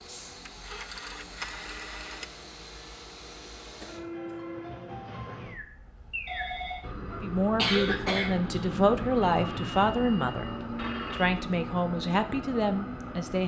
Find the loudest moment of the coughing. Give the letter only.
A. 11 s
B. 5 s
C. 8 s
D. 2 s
C.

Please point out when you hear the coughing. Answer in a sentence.
You can hear the coughing from 3.8 to 4.4 s and from 7.1 to 8.6 s.